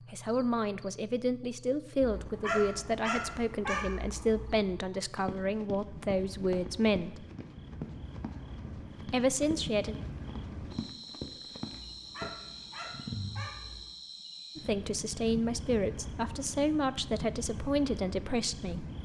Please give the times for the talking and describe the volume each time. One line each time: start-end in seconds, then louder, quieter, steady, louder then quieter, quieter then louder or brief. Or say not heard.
0.1-7.2 steady
9.1-9.9 brief
14.6-18.9 steady.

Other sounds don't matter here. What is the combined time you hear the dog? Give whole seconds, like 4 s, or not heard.
5 s.